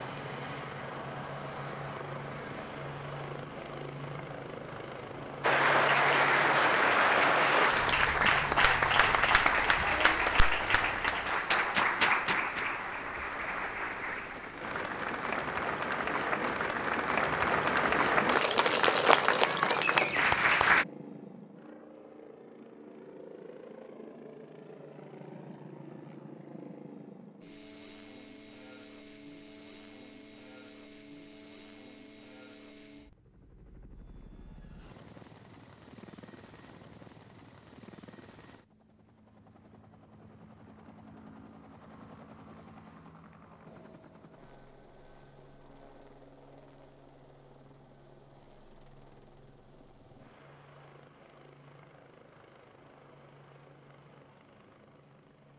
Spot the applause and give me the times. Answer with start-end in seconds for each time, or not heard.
5.4-20.9.